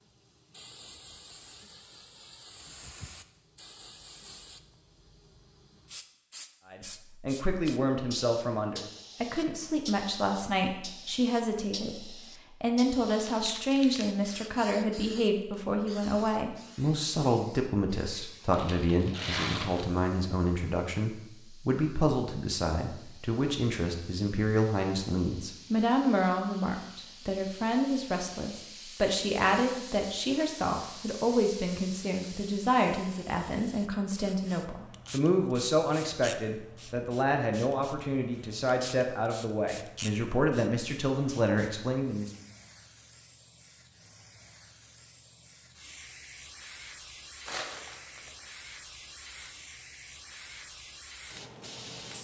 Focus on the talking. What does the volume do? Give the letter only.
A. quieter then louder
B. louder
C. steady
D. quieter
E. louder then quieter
C.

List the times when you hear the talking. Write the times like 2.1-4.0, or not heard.
6.7-42.3.